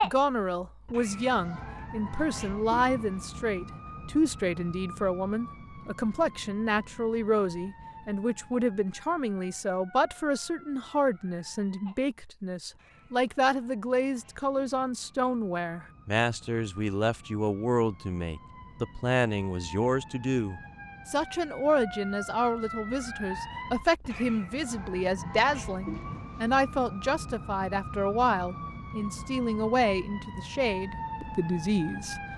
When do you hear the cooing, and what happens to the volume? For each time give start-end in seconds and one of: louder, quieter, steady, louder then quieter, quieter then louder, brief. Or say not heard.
not heard.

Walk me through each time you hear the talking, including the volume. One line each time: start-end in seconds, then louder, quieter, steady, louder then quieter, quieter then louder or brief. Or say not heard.
0.0-32.2 steady.